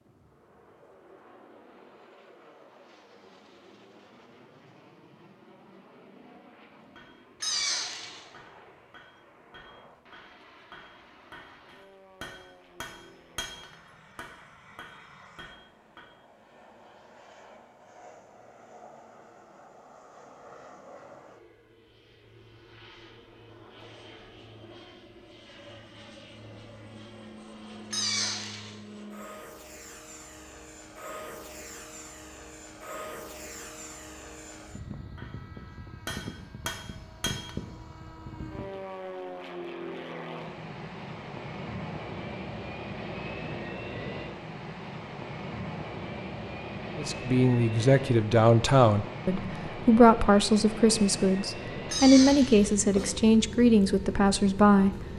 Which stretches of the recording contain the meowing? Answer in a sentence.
The meowing can be heard from 7.4 to 8.2 s, from 27.9 to 28.8 s and from 51.9 to 53.1 s.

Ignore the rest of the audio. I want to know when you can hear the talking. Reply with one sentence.
You can hear the talking from 47.0 to 55.1 s.